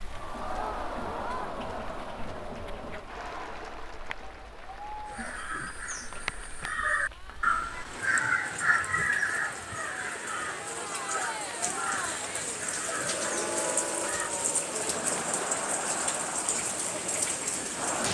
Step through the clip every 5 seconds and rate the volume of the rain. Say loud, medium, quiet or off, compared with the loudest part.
quiet, medium, loud, loud.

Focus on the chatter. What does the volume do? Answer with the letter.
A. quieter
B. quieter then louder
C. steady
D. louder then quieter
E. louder
B.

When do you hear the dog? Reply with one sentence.
The dog can't be heard in this clip.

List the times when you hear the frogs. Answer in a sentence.
The frogs can't be heard in this clip.